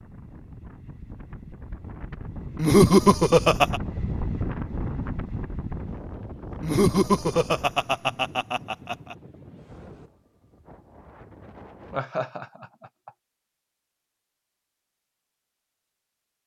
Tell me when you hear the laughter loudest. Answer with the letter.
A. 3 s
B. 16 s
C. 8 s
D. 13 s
A.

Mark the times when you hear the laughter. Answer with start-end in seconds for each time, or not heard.
2.5-3.8, 6.6-9.2, 11.9-13.1.